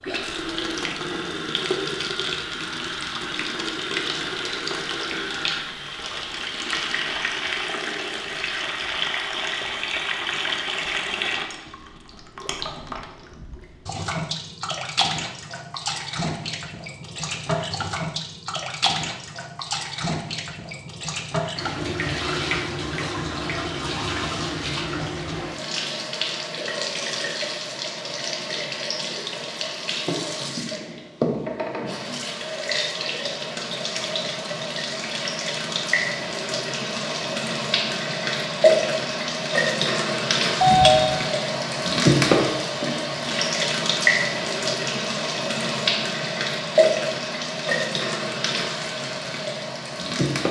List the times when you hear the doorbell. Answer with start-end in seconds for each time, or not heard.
40.6-41.2.